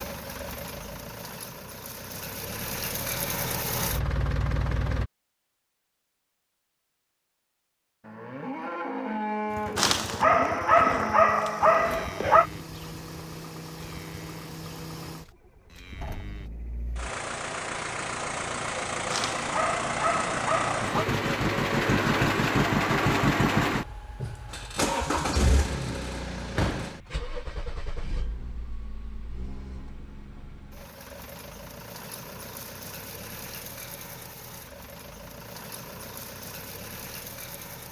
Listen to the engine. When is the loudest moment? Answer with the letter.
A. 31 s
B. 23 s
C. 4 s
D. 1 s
B.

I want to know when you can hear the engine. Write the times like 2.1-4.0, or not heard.
0.0-5.1, 9.4-37.8.